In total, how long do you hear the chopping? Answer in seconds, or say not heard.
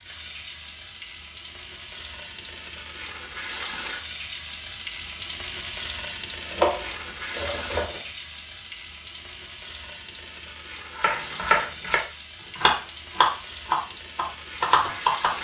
5 s.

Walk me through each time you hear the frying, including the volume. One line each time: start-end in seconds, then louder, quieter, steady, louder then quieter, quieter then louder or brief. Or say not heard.
0.0-15.3 louder then quieter.